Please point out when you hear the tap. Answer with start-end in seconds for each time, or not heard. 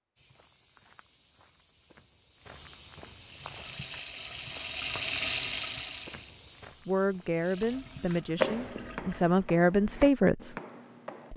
3.2-6.4, 7.4-9.2.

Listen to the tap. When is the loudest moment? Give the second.
5 s.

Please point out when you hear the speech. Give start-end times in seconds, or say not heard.
6.8-10.5.